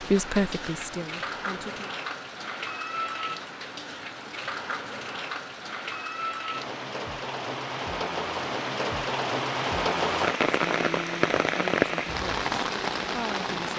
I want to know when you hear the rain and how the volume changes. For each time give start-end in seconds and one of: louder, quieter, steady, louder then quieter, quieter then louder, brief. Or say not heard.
0.0-13.7 louder.